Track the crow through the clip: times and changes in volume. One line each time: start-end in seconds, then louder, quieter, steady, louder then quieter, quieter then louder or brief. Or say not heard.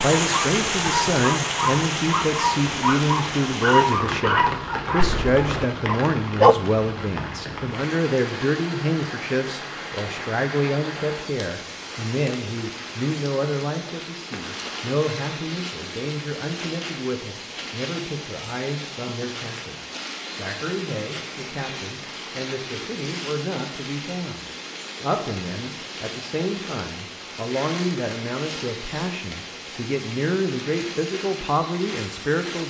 not heard.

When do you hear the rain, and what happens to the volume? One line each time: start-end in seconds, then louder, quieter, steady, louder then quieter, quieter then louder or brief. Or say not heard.
0.0-32.6 quieter.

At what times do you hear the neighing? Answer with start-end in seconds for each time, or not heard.
not heard.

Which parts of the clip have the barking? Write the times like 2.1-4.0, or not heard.
0.1-6.5.